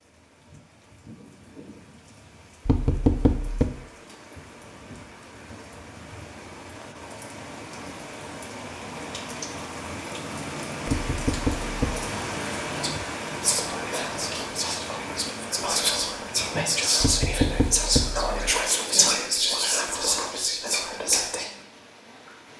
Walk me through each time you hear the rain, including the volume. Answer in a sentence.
You can hear the rain from 0.0 to 22.5 s, getting louder then quieter.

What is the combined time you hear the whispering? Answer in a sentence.
The whispering can be heard for 9 seconds in total.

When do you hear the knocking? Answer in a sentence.
You can hear the knocking from 2.6 to 3.7 s, from 10.8 to 12.1 s and from 17.0 to 18.3 s.